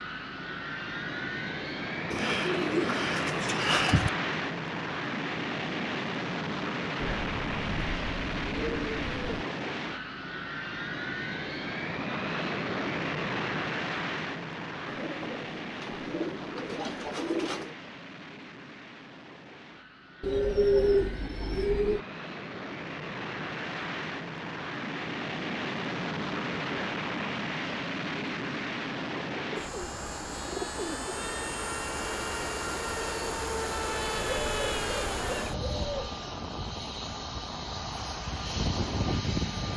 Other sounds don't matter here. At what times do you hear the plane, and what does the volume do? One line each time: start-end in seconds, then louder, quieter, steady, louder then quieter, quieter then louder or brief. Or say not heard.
0.0-39.7 quieter then louder.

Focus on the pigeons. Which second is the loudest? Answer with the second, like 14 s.
21 s.